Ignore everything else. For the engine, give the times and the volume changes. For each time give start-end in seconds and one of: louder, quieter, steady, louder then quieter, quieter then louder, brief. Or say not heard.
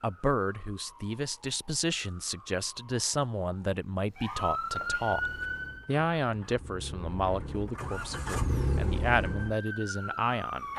5.0-10.7 louder then quieter.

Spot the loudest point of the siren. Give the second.
5 s.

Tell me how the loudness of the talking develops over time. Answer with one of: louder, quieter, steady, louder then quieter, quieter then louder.
steady.